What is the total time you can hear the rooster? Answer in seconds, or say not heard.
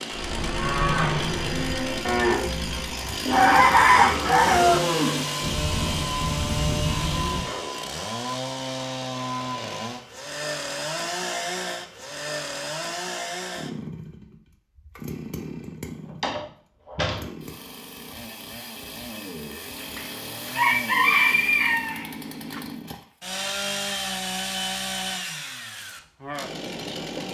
4 s.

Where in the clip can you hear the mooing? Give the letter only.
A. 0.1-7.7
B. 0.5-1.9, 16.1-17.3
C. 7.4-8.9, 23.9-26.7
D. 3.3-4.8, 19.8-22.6
A.